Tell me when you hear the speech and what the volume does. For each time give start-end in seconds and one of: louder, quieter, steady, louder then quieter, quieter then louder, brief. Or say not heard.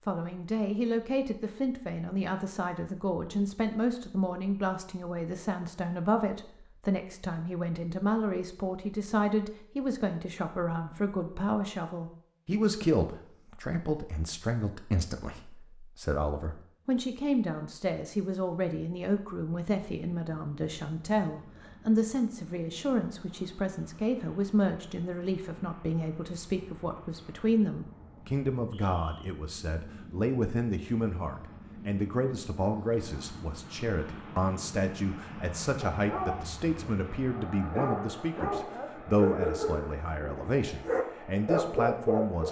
0.1-42.4 steady.